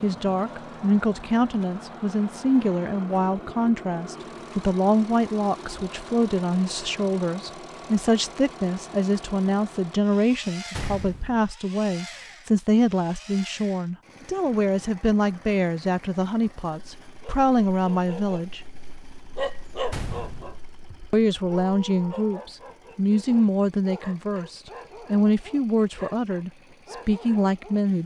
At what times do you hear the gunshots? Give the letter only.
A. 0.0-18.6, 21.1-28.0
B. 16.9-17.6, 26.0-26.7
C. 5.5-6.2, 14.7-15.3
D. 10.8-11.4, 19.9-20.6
D.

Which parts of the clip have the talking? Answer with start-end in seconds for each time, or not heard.
0.0-18.6, 21.1-28.0.